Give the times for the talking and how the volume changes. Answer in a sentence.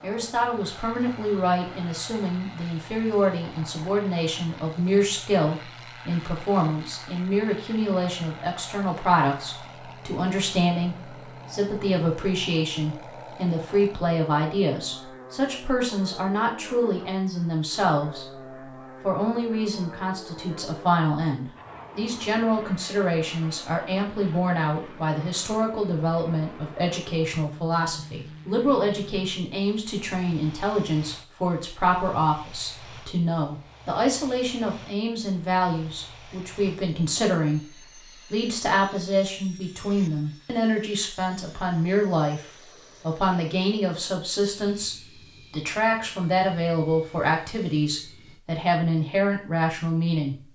You can hear the talking from 0.0 to 37.7 s, at a steady volume; and from 38.3 to 50.4 s, at a steady volume.